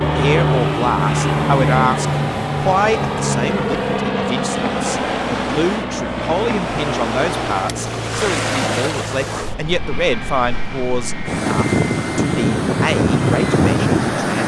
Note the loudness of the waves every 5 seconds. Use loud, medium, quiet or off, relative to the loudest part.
quiet, medium, loud.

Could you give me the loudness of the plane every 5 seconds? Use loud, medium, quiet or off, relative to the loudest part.
loud, medium, quiet.